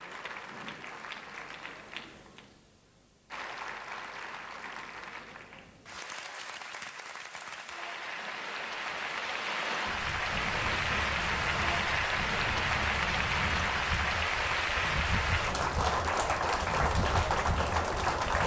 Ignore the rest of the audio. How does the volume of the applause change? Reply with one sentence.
The volume of the applause goes up.